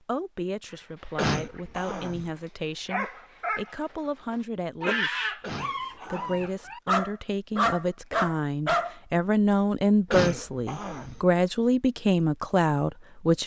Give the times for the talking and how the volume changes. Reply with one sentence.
You can hear the talking from 0.1 to 13.4 s, getting louder.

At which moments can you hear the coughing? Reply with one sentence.
The coughing can be heard from 1.1 to 2.3 s, from 5.4 to 6.5 s and from 10.1 to 11.2 s.